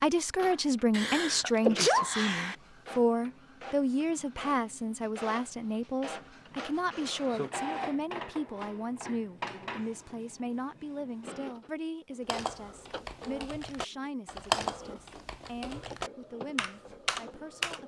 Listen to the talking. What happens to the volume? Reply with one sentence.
The volume of the talking goes down.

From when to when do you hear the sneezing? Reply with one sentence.
The sneezing can be heard from 0.9 to 2.5 s.